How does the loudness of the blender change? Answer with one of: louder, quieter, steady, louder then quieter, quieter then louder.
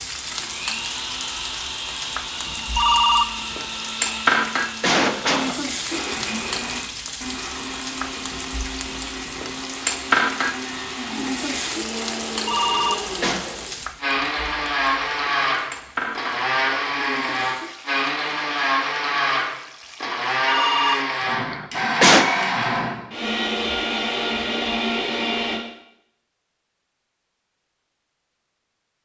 louder.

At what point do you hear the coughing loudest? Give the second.
22 s.